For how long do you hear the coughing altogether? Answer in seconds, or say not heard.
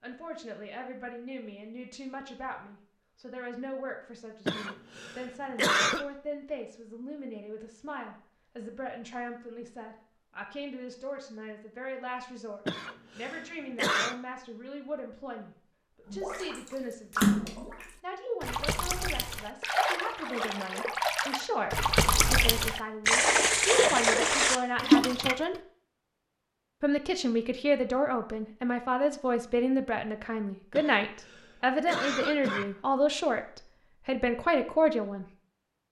5 s.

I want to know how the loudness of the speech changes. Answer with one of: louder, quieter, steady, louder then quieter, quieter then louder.
louder.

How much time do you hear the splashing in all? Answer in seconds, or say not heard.
9 s.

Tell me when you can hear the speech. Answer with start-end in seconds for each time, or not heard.
0.0-17.4, 18.0-25.6, 26.8-35.2.